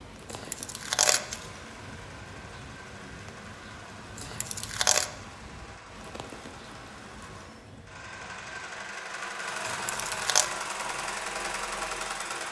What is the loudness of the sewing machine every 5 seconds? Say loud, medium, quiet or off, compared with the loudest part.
quiet, medium, loud.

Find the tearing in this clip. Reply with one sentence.
You can hear the tearing from 0.2 to 1.4 s, from 4.2 to 5.1 s and from 9.7 to 10.5 s.